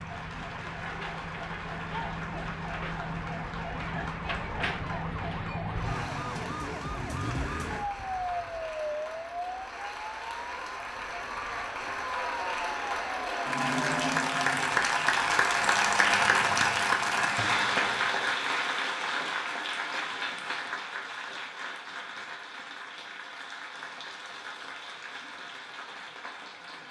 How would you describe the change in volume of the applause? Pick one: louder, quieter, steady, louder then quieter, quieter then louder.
louder then quieter.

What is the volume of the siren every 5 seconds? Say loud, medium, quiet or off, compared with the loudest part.
loud, loud, medium, medium, off, off.